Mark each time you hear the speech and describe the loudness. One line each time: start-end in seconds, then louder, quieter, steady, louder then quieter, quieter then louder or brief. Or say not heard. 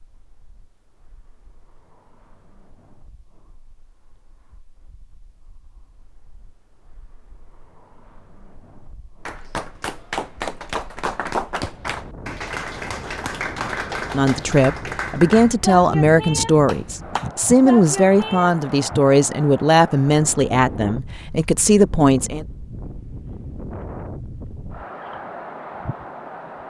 14.1-22.4 steady.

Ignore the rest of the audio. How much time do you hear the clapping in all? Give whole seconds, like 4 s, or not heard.
9 s.